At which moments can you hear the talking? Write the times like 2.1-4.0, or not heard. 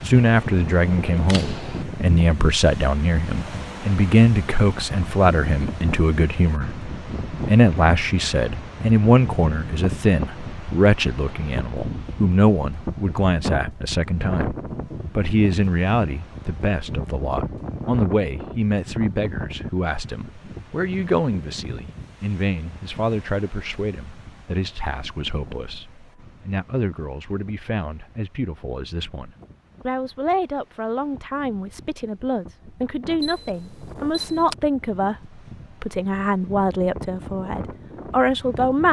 0.1-14.6, 15.2-38.8.